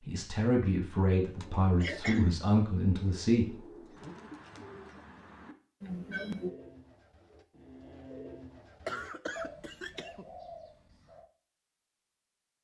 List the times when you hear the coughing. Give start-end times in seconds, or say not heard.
1.8-2.5, 5.8-6.5, 8.8-10.2.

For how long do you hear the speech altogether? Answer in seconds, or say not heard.
4 s.